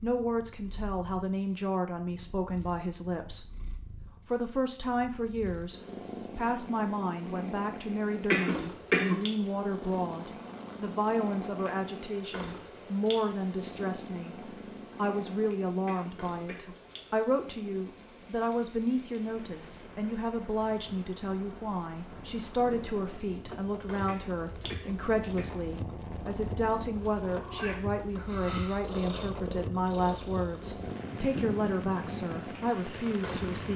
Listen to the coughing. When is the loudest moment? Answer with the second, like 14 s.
9 s.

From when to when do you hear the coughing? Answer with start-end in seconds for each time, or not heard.
8.3-9.2, 15.8-16.8, 24.1-25.6.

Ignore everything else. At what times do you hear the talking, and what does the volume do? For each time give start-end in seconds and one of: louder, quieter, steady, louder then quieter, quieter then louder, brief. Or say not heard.
0.0-33.7 steady.